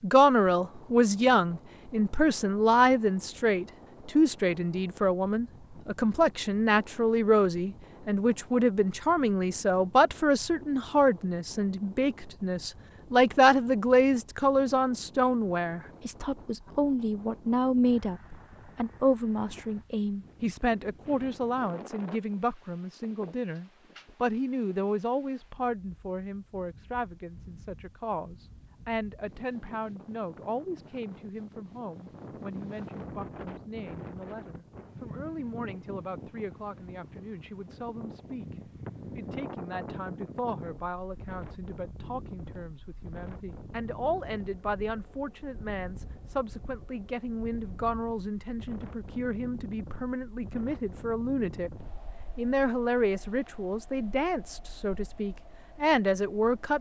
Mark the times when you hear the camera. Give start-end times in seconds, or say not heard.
not heard.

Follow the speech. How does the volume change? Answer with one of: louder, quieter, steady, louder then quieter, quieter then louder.
quieter then louder.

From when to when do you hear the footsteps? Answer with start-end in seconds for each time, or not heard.
not heard.